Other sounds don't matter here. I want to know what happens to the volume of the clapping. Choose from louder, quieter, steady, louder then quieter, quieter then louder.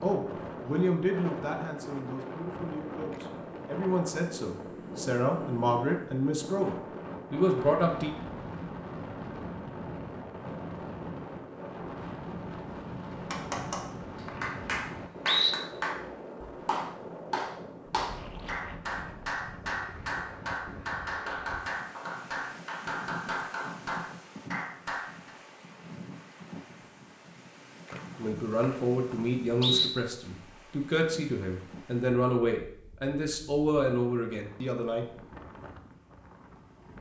steady.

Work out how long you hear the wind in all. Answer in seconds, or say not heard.
37 s.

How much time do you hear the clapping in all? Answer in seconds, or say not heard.
12 s.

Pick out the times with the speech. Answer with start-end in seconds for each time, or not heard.
0.0-8.2, 28.1-35.0.